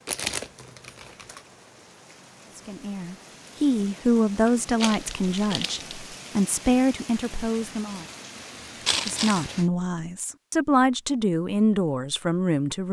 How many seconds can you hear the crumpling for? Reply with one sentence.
You can hear the crumpling for 3 seconds altogether.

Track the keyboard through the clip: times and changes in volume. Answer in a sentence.
You can't hear the keyboard here.